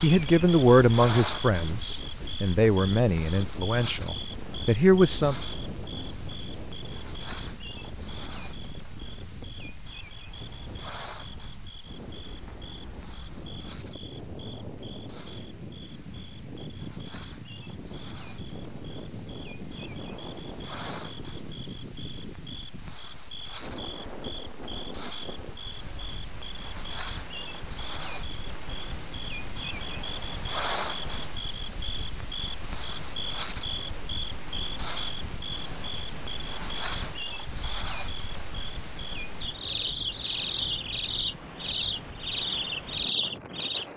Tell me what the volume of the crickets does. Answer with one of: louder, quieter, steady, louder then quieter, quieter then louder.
quieter then louder.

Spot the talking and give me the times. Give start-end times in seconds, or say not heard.
0.0-5.3.